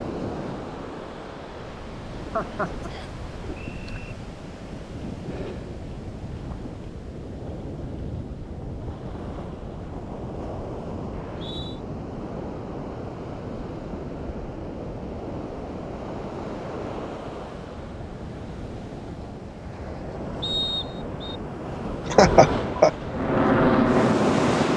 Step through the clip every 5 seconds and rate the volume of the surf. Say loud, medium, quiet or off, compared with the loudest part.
medium, medium, medium, medium, loud.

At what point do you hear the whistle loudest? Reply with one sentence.
The volume of the whistle peaks at 21 seconds.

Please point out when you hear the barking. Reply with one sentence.
The barking can't be heard in this clip.